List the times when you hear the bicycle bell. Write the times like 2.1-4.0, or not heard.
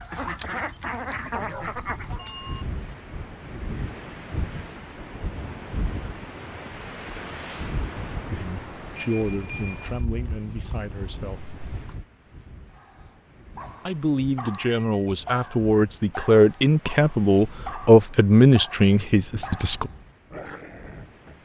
2.1-2.6, 8.9-9.9, 14.5-15.0.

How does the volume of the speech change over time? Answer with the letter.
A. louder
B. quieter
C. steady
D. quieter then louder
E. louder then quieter
A.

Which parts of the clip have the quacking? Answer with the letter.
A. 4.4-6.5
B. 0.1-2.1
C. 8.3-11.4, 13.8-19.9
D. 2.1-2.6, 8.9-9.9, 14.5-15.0
B.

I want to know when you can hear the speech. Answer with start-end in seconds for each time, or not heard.
8.3-11.4, 13.8-19.9.